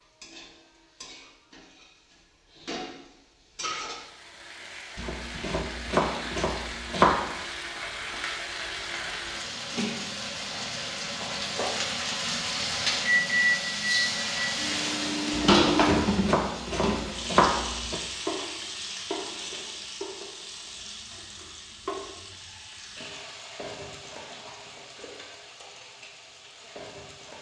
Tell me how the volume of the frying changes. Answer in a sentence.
The volume of the frying goes up, then down.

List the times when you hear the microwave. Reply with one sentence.
The microwave can be heard from 13.1 to 16.1 s.